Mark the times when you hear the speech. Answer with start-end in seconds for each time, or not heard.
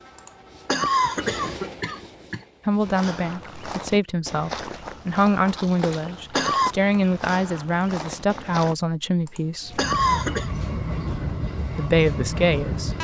2.6-9.8, 11.8-12.9.